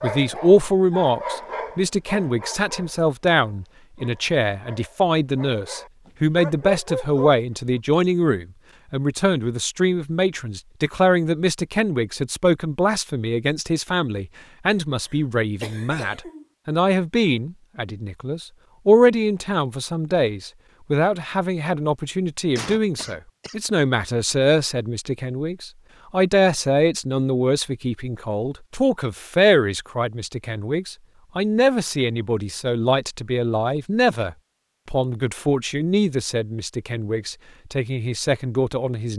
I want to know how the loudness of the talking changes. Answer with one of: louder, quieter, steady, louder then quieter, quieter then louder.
steady.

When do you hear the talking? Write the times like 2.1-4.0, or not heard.
0.0-39.1.